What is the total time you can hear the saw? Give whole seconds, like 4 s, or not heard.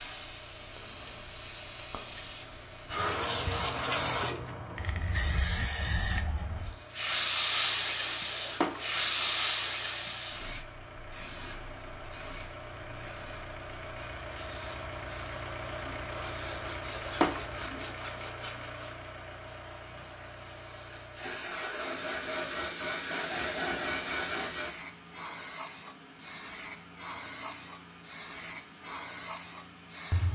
5 s.